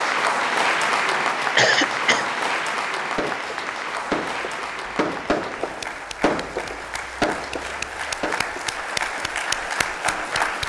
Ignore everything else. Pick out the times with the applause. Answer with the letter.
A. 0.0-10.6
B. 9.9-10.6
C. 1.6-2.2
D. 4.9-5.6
A.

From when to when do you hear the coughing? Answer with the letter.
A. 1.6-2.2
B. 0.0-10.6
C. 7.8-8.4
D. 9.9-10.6
A.